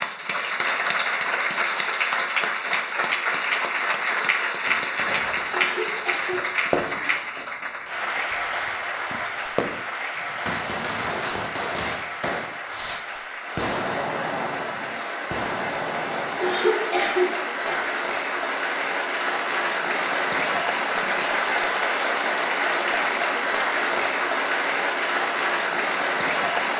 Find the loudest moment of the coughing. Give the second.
17 s.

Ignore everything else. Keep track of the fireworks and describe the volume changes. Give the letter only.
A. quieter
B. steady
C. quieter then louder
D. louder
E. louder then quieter
C.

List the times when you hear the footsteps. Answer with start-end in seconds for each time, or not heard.
not heard.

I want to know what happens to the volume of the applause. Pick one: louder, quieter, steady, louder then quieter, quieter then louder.
quieter then louder.